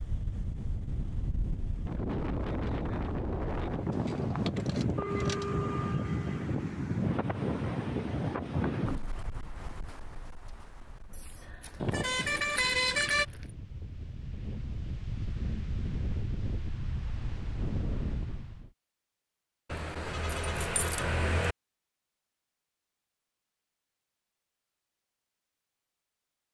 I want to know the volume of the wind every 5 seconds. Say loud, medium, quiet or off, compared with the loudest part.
loud, loud, quiet, medium, off, off.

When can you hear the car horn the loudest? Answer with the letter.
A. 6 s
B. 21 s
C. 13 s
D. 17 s
C.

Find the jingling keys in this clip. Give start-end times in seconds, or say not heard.
3.9-5.7, 11.1-13.6, 19.7-21.6.